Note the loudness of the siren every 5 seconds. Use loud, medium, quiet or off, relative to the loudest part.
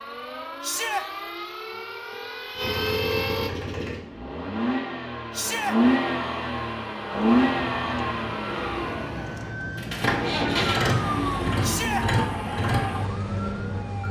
loud, medium, loud.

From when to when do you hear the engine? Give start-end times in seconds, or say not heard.
2.5-14.0.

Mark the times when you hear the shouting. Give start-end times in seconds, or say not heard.
0.6-1.1, 5.3-5.8, 11.6-12.1.